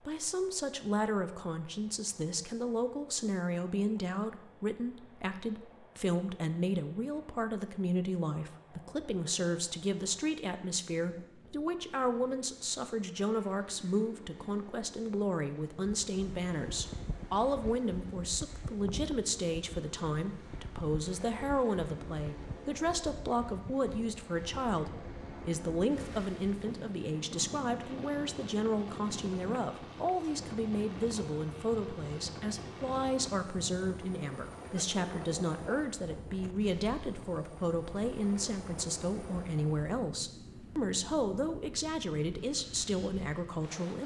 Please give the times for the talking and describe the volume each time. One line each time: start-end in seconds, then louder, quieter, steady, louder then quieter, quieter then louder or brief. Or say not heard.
0.1-44.0 steady.